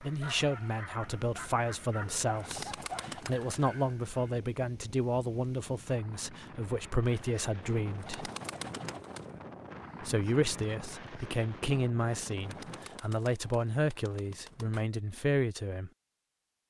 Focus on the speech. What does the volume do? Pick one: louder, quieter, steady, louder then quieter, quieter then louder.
steady.